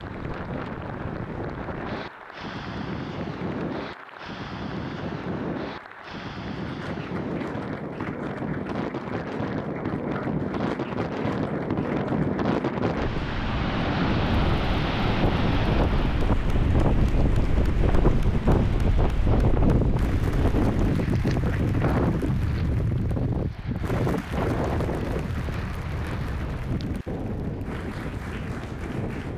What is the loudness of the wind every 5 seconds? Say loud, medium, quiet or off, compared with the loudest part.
medium, medium, loud, loud, loud, medium.